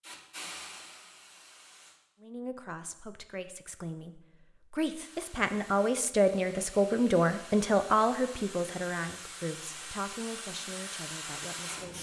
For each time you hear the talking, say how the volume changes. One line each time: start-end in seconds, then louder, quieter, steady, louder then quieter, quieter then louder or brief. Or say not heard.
2.2-11.9 louder then quieter.